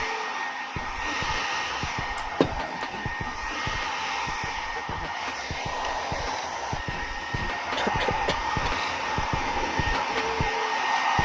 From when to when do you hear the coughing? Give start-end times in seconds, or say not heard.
2.1-2.8, 7.8-8.8.